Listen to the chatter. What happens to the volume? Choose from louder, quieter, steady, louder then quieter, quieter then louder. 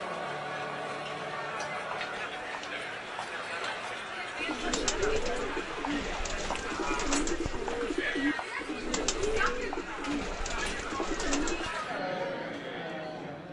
steady.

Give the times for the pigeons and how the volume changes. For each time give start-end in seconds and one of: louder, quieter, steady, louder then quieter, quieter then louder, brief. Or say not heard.
4.3-11.8 steady.